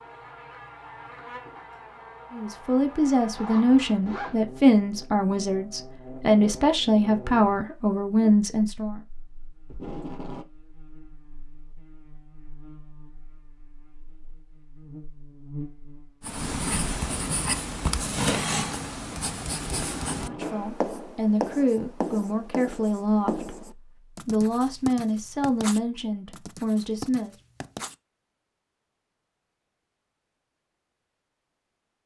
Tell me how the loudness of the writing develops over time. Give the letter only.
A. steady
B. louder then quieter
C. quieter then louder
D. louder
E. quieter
E.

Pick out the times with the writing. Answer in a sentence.
The writing can be heard from 16.2 to 27.9 s.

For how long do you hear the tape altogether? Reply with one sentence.
The tape can be heard for 2 seconds in total.